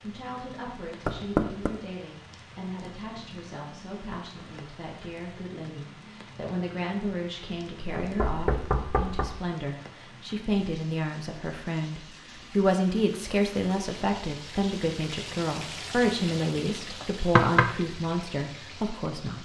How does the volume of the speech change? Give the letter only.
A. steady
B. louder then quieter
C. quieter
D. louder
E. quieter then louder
D.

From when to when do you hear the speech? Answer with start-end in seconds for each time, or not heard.
0.0-19.4.